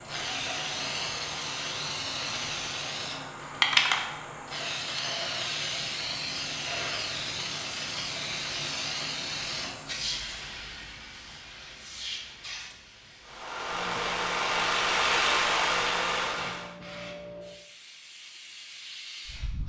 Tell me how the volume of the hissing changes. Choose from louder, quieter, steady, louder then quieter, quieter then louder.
quieter.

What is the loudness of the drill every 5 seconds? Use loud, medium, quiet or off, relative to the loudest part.
quiet, off, loud, loud.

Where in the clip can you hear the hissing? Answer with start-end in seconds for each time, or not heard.
0.0-19.6.